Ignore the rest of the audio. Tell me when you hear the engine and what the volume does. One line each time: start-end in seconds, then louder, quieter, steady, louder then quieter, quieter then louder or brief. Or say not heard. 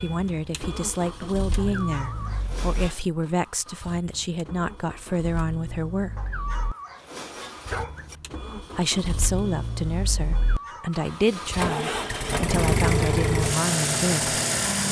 0.0-14.8 quieter then louder.